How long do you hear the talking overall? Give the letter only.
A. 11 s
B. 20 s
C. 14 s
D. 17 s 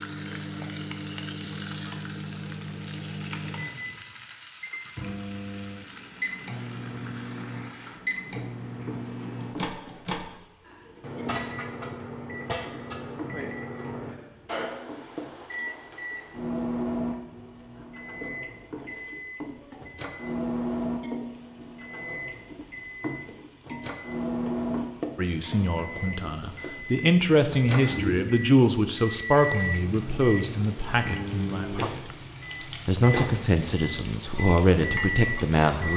A.